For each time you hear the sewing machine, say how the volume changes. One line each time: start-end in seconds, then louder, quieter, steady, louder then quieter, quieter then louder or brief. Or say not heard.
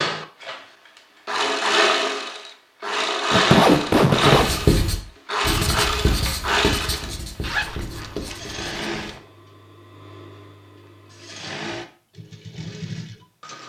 0.0-13.6 quieter.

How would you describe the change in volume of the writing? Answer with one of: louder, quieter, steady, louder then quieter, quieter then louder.
quieter.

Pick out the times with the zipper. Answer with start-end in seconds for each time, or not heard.
3.3-4.5, 7.4-9.2.